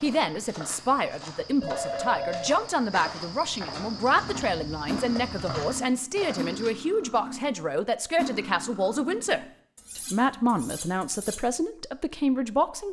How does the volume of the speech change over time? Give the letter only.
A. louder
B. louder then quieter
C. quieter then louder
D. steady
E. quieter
D.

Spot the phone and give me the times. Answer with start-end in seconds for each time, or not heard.
1.6-2.5.